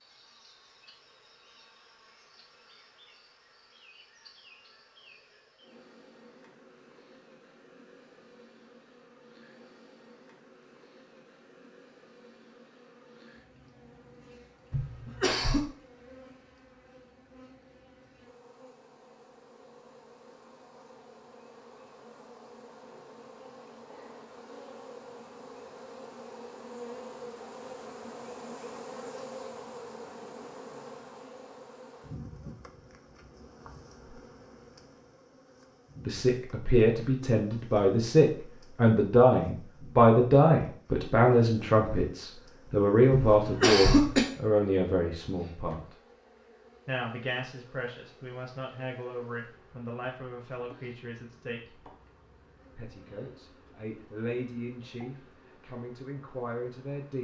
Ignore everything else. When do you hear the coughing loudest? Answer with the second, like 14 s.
44 s.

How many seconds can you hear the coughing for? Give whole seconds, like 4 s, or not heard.
2 s.